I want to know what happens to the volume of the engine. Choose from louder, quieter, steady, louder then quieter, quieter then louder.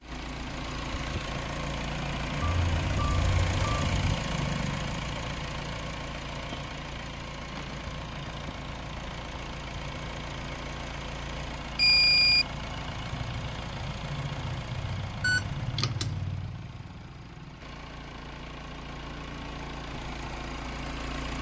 quieter.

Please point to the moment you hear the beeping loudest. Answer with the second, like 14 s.
12 s.